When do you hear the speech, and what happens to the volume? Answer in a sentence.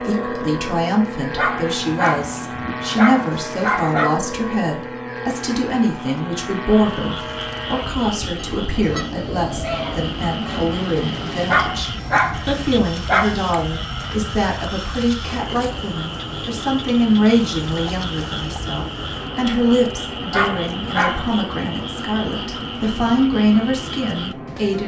The speech can be heard from 0.0 to 24.8 s, at a steady volume.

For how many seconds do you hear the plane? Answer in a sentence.
The plane can be heard for 25 seconds in total.